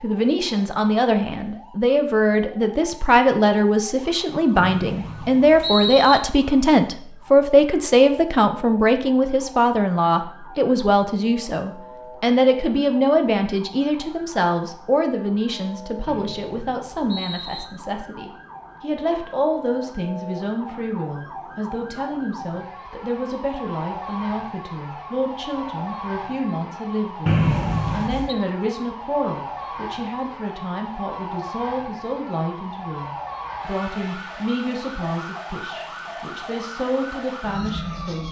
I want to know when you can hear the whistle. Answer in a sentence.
The whistle can be heard from 4.5 to 6.2 s, from 16.1 to 17.7 s and from 27.2 to 28.4 s.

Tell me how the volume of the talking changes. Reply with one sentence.
The loudness of the talking goes down.